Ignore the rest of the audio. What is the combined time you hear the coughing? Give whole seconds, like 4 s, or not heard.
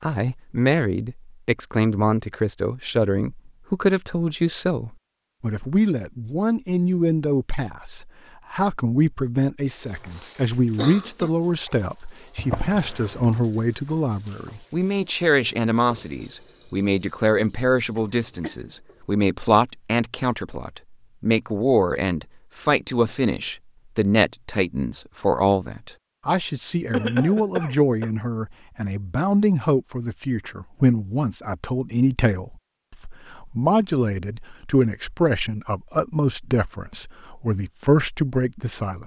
3 s.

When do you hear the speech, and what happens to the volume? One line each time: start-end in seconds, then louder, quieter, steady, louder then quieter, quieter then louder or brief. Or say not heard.
0.0-39.0 steady.